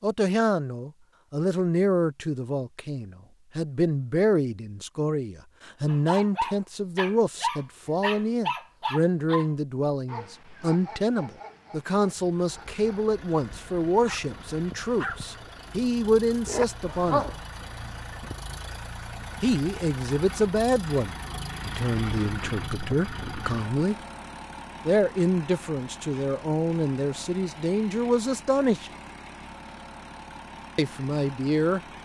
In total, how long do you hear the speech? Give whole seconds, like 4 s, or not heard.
27 s.